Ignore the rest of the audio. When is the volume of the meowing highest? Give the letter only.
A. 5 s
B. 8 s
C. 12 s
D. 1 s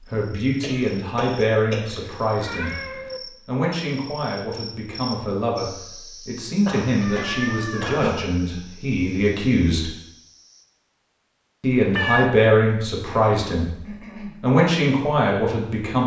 C.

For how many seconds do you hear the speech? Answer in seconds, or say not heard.
13 s.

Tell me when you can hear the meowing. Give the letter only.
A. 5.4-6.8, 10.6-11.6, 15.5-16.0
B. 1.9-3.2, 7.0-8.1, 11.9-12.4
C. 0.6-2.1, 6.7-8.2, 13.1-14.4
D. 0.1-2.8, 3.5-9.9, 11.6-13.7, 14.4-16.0
B.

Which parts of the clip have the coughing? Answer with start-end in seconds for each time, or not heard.
0.6-2.1, 6.7-8.2, 13.1-14.4.